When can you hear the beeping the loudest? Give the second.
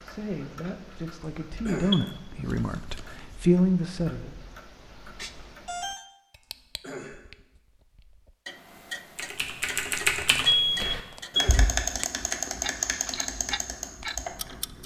11 s.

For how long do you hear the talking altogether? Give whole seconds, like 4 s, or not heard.
4 s.